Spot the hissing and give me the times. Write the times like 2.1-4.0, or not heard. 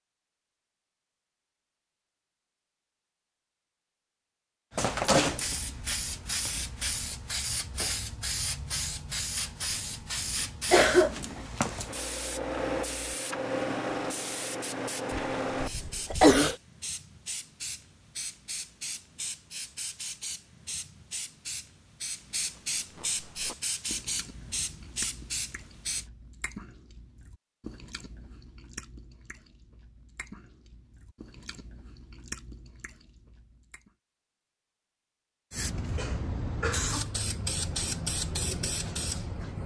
4.7-26.1, 35.5-39.6.